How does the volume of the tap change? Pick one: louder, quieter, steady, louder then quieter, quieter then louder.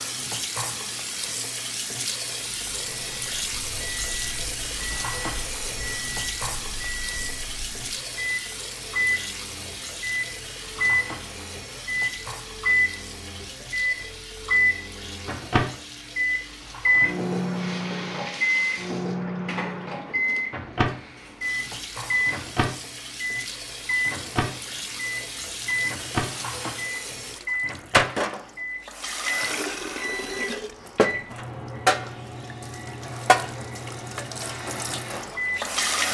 quieter then louder.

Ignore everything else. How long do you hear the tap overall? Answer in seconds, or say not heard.
36 s.